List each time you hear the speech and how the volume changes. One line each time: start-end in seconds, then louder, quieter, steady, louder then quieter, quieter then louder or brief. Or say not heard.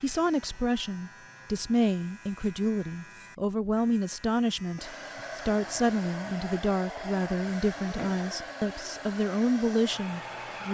0.0-10.6 steady.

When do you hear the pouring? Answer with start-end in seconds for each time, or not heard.
not heard.